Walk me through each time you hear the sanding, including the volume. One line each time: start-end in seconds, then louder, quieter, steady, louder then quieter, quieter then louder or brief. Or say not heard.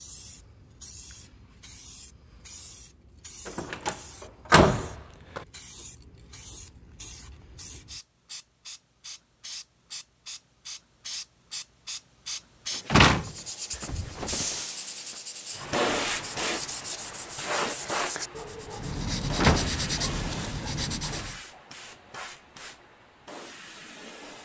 13.2-21.4 louder.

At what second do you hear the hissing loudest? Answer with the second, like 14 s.
16 s.